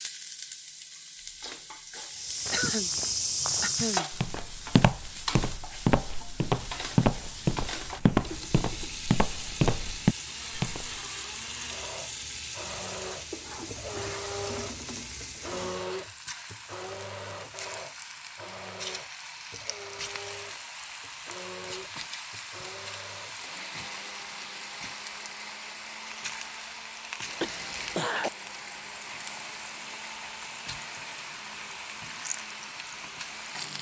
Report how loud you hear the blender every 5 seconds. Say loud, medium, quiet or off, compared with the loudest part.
off, off, loud, loud, medium, medium, medium.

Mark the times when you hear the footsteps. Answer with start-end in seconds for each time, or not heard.
2.1-10.9.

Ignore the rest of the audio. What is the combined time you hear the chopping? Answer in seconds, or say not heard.
not heard.